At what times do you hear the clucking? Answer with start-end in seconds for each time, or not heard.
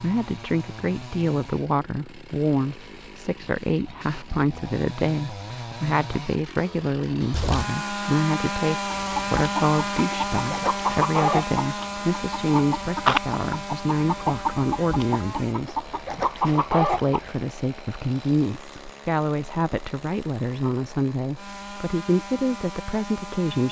8.9-17.3.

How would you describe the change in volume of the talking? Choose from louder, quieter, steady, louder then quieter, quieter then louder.
steady.